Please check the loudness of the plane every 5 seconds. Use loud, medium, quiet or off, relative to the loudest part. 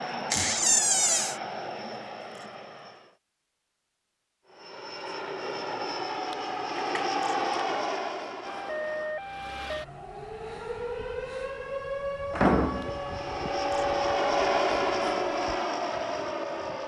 medium, loud, loud, loud.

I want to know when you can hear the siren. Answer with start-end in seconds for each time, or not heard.
8.4-16.8.